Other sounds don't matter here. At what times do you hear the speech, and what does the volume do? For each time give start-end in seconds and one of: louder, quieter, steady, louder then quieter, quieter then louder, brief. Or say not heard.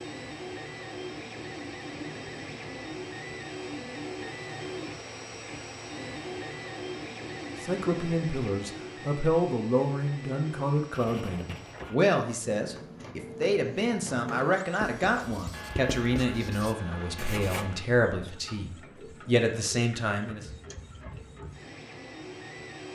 7.6-20.4 steady.